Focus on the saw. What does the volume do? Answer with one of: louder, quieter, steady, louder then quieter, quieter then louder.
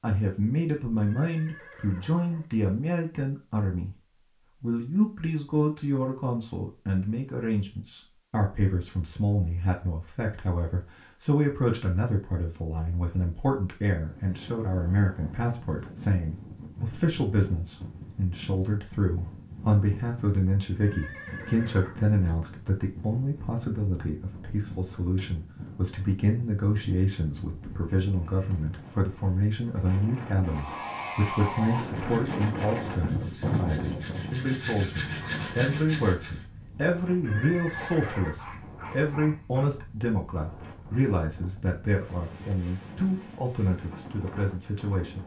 quieter then louder.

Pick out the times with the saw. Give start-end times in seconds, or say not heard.
30.4-36.5.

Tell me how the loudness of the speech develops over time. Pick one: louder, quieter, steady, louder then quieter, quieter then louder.
steady.